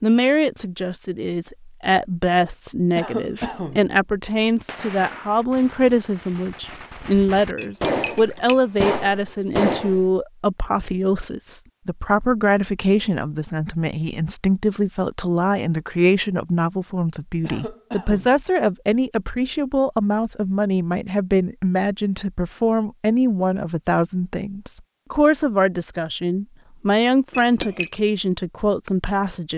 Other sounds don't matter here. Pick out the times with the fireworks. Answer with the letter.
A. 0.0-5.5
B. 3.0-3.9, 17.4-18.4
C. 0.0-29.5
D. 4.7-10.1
D.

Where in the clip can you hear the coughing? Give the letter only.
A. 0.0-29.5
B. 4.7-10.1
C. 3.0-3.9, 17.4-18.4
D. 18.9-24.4
C.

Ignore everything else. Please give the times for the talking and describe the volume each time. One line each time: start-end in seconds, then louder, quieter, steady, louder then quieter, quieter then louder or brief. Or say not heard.
0.0-29.5 steady.